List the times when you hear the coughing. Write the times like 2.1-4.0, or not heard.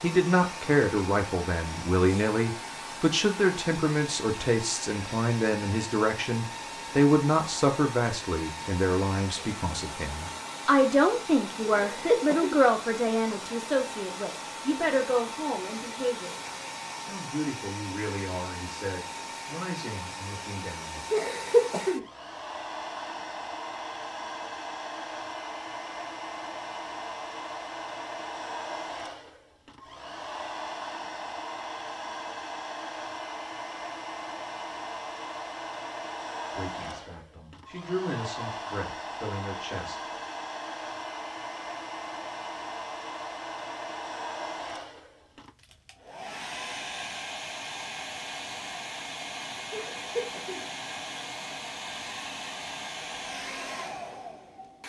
11.7-12.6, 21.1-22.1, 49.7-50.6.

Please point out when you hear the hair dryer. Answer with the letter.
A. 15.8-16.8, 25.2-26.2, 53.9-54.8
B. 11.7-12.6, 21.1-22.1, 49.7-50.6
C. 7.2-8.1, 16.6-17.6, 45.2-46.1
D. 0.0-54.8
D.